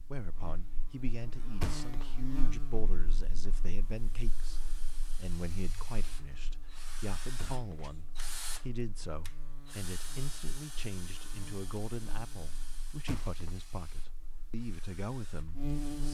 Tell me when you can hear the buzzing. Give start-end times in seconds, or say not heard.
0.0-16.0.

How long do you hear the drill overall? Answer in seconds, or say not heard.
12 s.